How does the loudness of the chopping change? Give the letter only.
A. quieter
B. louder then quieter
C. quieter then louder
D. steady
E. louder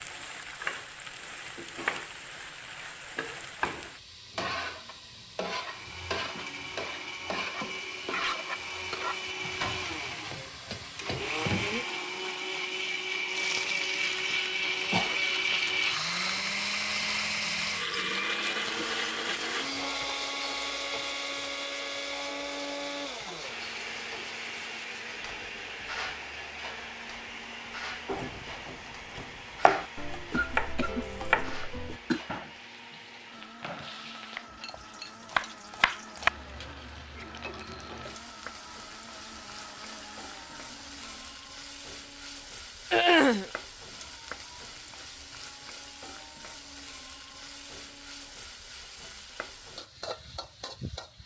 C.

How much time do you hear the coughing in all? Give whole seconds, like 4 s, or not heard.
4 s.